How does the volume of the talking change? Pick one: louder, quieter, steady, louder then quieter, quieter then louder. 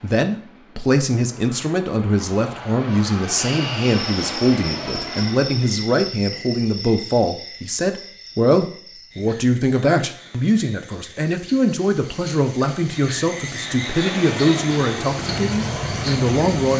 steady.